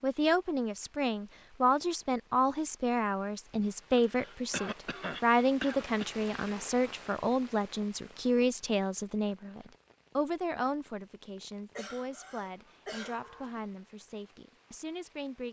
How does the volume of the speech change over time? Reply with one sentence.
The loudness of the speech goes down.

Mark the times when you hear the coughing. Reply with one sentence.
The coughing can be heard from 3.5 to 6.1 s and from 11.8 to 13.6 s.